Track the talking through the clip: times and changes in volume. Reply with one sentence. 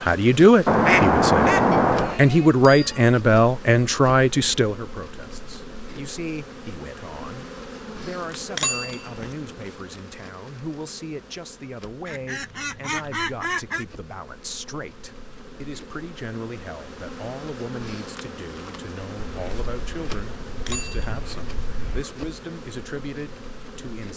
You can hear the talking from 0.0 to 24.1 s, getting quieter.